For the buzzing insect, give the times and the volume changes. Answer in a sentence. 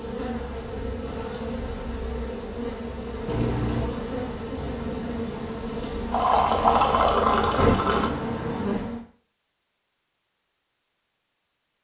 The buzzing insect can be heard from 0.0 to 9.0 s, getting louder.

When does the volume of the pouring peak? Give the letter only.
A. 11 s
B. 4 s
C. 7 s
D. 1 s
C.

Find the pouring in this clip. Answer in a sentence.
You can hear the pouring from 3.2 to 4.0 s and from 6.1 to 8.1 s.